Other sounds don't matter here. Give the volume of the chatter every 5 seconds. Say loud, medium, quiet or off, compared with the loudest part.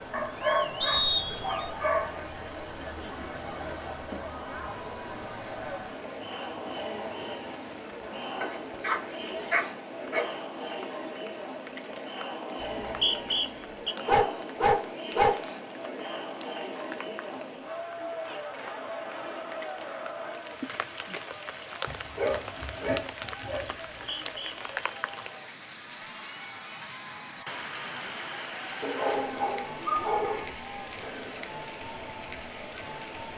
loud, loud, loud, loud, medium, medium, medium.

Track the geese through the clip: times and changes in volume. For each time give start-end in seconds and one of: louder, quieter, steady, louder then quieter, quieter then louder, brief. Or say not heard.
not heard.